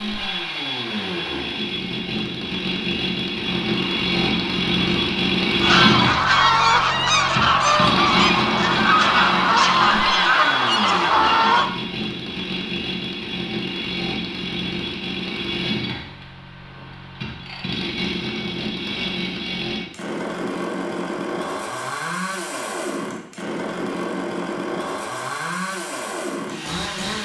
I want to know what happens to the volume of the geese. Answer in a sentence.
The volume of the geese goes up.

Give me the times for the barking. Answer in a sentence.
You can't hear the barking here.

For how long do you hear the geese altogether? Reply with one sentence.
You can hear the geese for 8 seconds altogether.